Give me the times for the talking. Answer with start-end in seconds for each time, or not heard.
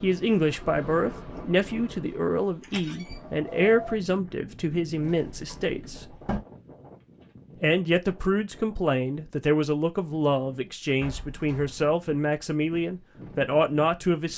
0.0-6.0, 7.6-14.3.